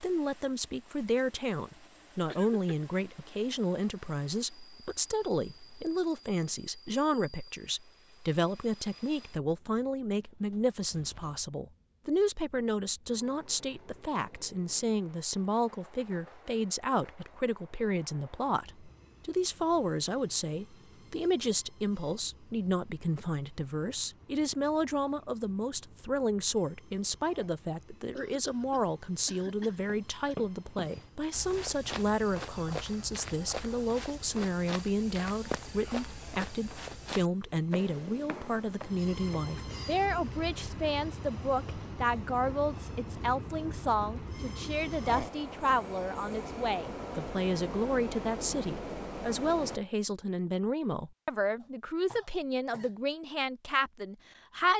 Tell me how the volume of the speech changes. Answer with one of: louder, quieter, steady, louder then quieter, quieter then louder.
steady.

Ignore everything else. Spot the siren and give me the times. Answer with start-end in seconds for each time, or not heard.
not heard.